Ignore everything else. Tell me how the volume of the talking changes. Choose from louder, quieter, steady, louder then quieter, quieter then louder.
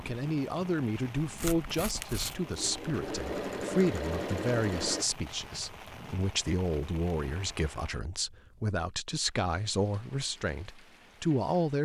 steady.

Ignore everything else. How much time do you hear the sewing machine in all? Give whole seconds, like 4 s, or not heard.
3 s.